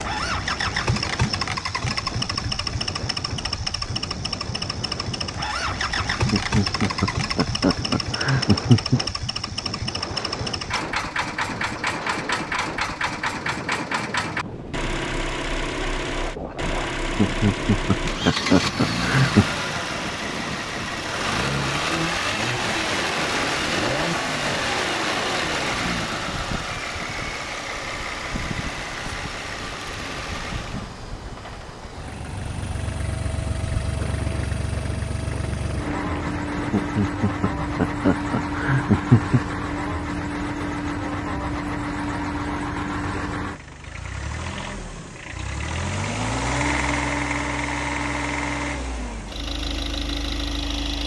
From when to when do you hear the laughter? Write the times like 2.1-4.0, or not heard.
6.3-9.0, 17.1-19.5, 36.7-39.4.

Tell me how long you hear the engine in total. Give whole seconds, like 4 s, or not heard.
51 s.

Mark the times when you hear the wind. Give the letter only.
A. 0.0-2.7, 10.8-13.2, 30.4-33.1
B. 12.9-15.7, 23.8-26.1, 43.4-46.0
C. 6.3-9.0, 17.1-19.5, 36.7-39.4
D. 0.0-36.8
D.